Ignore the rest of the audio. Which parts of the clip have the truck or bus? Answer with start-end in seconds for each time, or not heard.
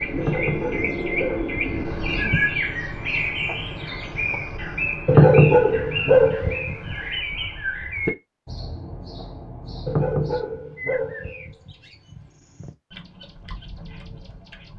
not heard.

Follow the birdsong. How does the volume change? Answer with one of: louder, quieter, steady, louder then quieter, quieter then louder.
quieter.